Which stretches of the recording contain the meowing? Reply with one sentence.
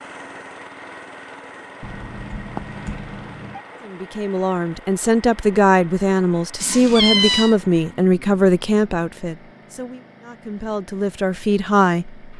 You can hear the meowing from 1.8 to 3.6 s and from 6.6 to 7.5 s.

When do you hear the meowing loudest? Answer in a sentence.
The loudest moment of the meowing is at 7 seconds.